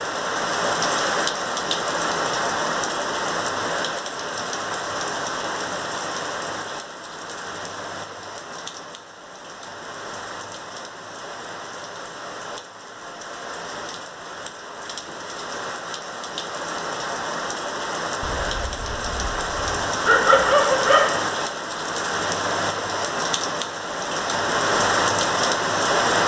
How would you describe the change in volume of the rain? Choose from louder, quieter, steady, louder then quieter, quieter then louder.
quieter then louder.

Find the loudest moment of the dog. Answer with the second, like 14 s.
20 s.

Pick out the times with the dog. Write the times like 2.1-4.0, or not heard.
18.2-21.1.